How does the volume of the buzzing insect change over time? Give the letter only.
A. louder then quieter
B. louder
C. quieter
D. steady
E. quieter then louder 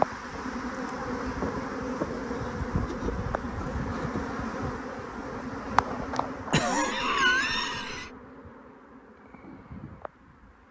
C.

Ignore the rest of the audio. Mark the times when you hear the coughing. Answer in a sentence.
The coughing can be heard from 6.5 to 8.1 s.